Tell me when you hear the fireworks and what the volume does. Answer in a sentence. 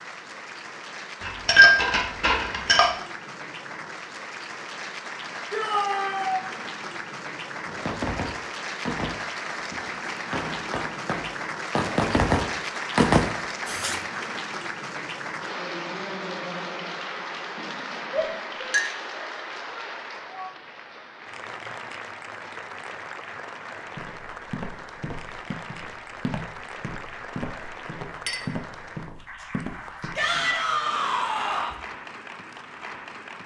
The fireworks can be heard from 7.7 to 14.1 s, getting quieter then louder.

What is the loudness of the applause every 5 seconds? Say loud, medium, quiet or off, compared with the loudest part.
medium, loud, loud, loud, medium, medium, medium.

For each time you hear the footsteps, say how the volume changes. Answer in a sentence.
You can hear the footsteps from 23.9 to 30.2 s, at a steady volume.